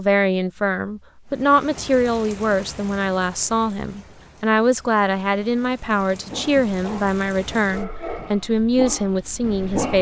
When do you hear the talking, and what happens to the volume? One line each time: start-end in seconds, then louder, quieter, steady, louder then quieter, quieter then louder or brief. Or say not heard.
0.0-9.9 steady.